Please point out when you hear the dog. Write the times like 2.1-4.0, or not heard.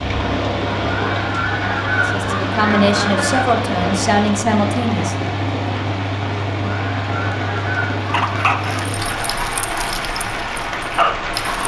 8.1-11.6.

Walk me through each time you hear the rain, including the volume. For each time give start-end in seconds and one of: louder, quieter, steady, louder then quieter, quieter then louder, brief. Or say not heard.
0.0-11.6 steady.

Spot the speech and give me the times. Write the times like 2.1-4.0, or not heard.
2.0-5.3.